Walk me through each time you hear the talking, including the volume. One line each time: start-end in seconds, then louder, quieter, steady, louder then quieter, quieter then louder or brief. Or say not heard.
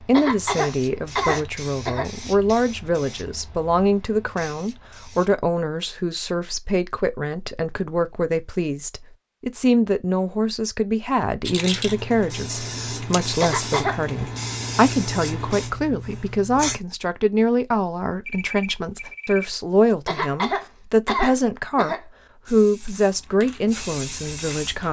0.0-24.8 steady.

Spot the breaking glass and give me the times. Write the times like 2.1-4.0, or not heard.
not heard.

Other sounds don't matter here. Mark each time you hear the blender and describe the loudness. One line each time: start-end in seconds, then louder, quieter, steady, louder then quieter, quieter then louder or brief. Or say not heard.
not heard.